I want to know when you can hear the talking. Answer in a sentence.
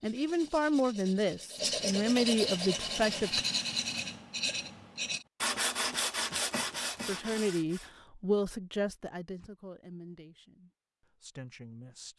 The talking can be heard from 0.0 to 3.5 s and from 7.0 to 12.1 s.